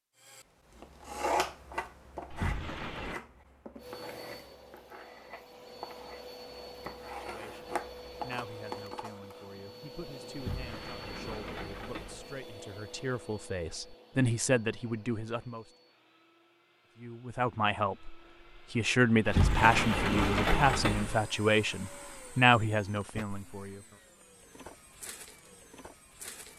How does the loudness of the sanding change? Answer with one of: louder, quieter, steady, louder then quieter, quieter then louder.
quieter then louder.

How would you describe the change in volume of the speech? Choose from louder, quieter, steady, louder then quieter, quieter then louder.
louder.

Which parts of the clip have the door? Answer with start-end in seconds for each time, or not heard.
2.3-3.1, 10.3-12.4, 19.2-21.2.